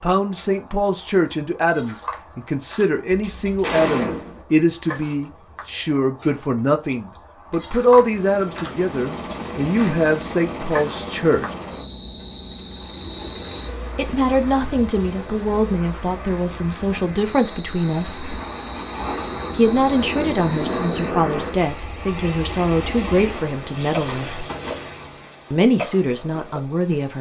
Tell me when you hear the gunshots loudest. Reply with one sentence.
The volume of the gunshots peaks at 4 seconds.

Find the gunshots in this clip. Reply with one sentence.
You can hear the gunshots from 3.1 to 4.5 s and from 23.3 to 25.1 s.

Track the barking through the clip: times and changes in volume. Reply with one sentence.
You can't hear the barking here.